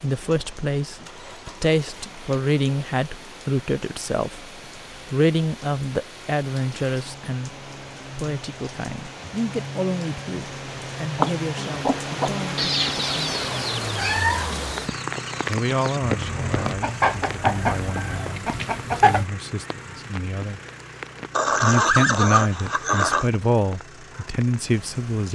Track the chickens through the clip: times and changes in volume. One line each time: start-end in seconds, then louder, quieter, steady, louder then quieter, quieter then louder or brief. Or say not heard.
11.2-19.2 quieter then louder.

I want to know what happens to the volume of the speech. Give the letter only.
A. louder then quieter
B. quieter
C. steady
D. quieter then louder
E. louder
D.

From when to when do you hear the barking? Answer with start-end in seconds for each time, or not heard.
not heard.